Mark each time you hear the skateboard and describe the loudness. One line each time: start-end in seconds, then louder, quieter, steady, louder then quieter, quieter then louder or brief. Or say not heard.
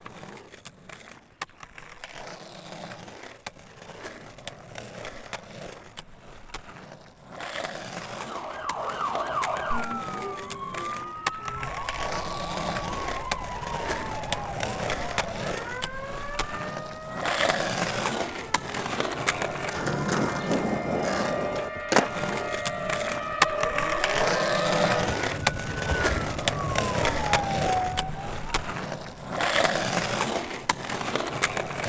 0.0-31.8 louder.